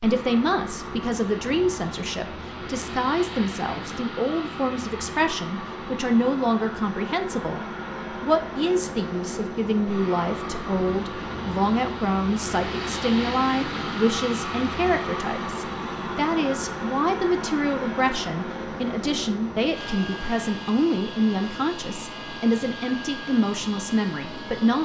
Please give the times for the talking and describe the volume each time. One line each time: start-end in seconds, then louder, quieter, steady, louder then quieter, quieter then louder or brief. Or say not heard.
0.0-24.8 steady.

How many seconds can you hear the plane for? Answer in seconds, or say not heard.
25 s.